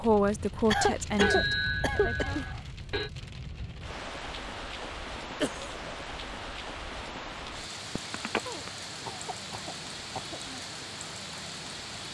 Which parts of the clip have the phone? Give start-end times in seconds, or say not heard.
1.2-3.1, 8.0-8.4.